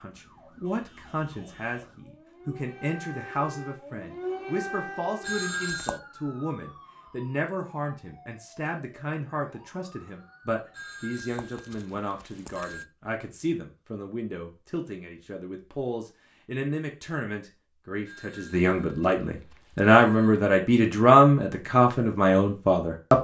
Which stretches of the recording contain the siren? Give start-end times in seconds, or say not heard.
0.0-10.9.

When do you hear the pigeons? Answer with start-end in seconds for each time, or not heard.
not heard.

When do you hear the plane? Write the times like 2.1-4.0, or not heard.
not heard.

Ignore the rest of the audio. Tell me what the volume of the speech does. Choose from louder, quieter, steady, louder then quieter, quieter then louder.
louder.